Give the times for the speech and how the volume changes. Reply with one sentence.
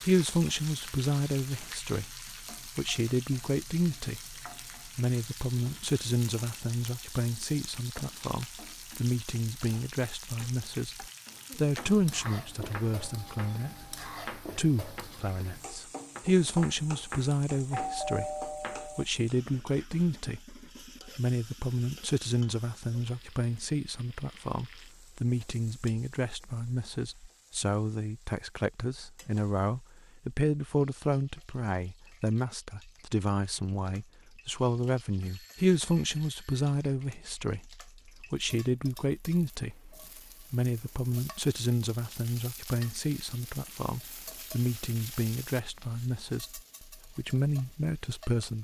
The speech can be heard from 0.0 to 48.5 s, at a steady volume.